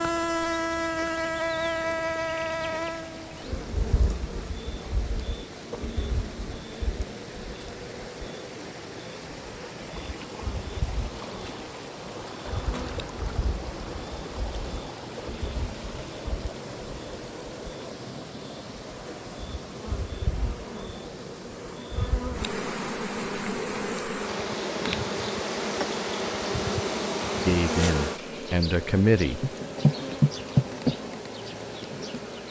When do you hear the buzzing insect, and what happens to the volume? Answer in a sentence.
The buzzing insect can be heard from 0.0 to 32.4 s, getting quieter then louder.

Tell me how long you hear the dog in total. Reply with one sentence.
The dog can't be heard in this clip.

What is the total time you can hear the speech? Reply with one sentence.
The speech can be heard for 2 seconds in total.